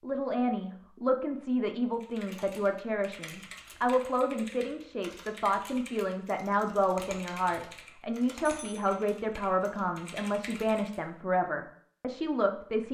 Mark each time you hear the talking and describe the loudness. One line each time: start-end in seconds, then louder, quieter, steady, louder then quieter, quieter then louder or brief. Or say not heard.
0.0-12.9 steady.